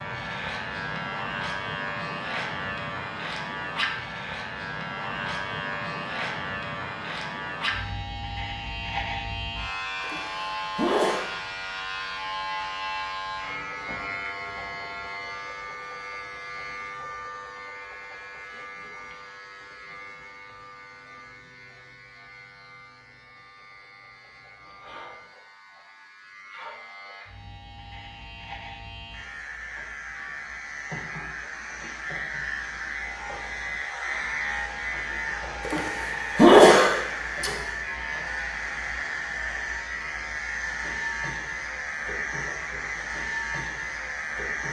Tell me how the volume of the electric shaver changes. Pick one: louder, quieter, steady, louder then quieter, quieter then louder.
quieter then louder.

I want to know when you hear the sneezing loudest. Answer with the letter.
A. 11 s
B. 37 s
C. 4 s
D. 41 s
B.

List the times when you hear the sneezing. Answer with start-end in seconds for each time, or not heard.
10.0-11.2, 35.6-37.5.